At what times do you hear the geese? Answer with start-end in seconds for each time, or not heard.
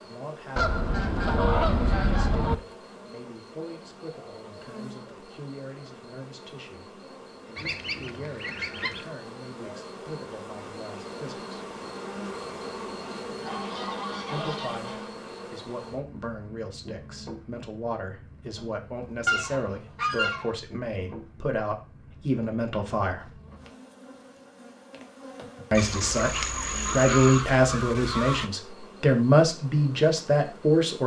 0.6-2.5, 7.5-9.1, 13.4-15.1, 19.2-20.6, 25.8-28.5.